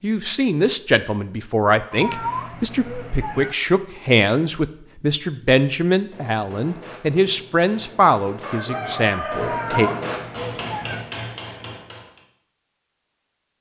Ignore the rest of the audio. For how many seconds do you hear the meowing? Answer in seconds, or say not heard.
3 s.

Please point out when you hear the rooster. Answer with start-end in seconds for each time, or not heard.
8.4-9.9.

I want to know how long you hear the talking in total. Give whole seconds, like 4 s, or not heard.
10 s.